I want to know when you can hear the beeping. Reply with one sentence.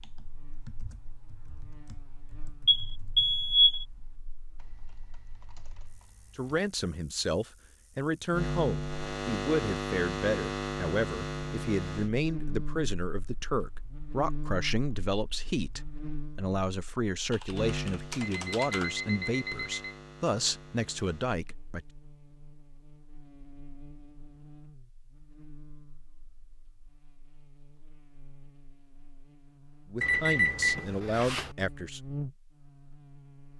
You can hear the beeping from 2.6 to 3.9 s, from 18.4 to 19.9 s and from 30.0 to 31.6 s.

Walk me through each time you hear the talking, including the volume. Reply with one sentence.
The talking can be heard from 6.3 to 21.9 s, at a steady volume; and briefly from 29.9 to 32.0 s.